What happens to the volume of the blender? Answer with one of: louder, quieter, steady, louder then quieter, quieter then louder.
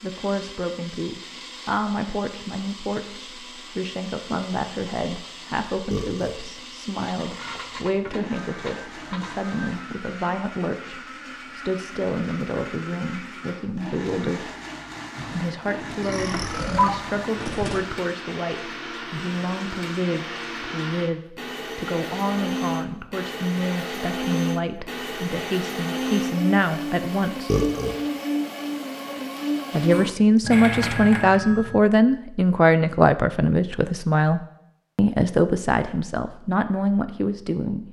louder.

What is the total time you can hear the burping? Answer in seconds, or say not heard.
4 s.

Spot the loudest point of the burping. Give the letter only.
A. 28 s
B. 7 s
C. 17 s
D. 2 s
A.